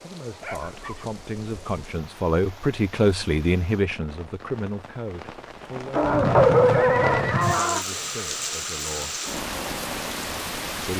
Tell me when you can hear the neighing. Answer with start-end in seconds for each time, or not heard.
6.0-7.6.